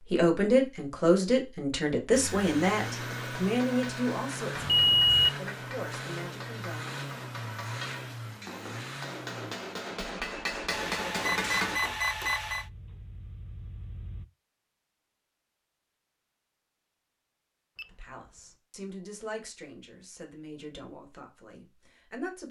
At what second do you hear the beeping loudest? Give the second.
5 s.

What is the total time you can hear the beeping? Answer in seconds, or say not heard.
3 s.